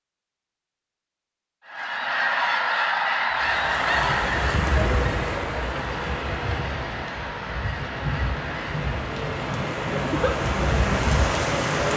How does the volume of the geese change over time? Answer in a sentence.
The volume of the geese goes down.